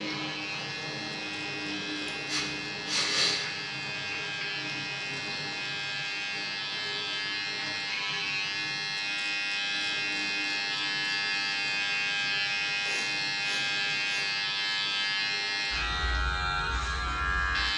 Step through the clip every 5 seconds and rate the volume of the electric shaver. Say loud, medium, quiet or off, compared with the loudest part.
medium, loud, loud, loud.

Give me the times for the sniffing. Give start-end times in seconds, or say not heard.
2.2-3.5, 12.8-14.2.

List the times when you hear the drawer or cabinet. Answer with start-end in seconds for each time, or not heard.
not heard.